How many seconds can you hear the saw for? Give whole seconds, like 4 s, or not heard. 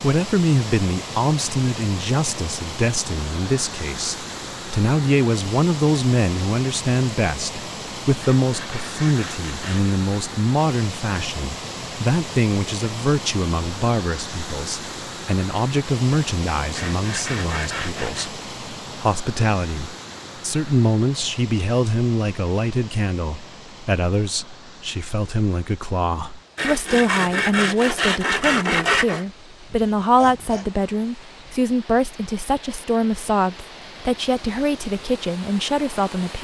6 s.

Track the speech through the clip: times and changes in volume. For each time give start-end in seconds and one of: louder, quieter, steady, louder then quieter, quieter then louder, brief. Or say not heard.
0.0-36.3 steady.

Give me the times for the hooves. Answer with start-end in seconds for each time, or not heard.
not heard.